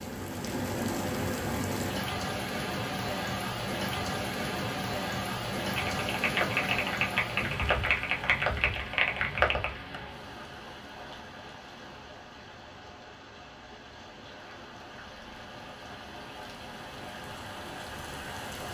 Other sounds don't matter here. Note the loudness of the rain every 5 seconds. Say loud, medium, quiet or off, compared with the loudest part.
loud, loud, quiet, medium.